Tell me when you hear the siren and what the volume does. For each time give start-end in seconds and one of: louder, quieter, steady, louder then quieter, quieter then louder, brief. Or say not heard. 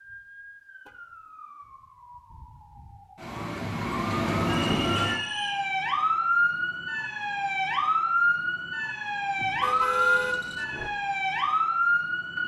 0.0-12.4 louder.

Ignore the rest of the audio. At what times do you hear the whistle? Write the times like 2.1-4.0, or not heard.
4.5-5.7.